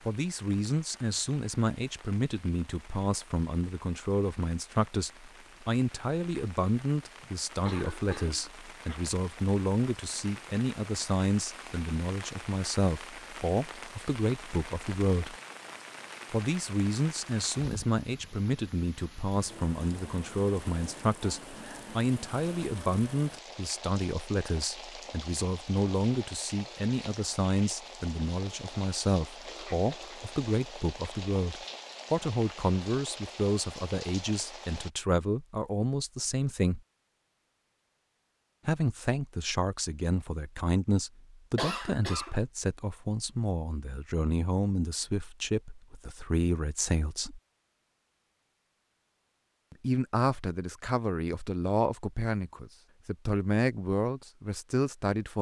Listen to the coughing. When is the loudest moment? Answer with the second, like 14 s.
42 s.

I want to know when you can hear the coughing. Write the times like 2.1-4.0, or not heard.
7.2-9.1, 29.4-30.3, 41.5-42.4.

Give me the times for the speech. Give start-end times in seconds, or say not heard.
0.1-15.3, 16.3-36.8, 38.6-47.4, 49.7-55.3.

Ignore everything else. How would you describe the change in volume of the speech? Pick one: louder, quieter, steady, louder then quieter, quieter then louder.
steady.